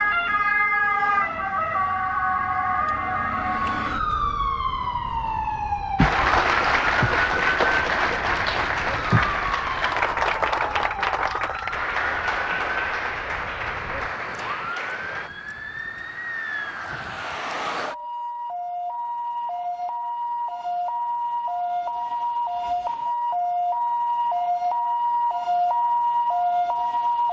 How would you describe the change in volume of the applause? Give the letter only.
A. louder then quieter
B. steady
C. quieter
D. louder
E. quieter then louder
C.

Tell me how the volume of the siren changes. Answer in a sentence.
The loudness of the siren goes down, then up.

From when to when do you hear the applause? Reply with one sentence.
You can hear the applause from 6.0 to 15.3 s.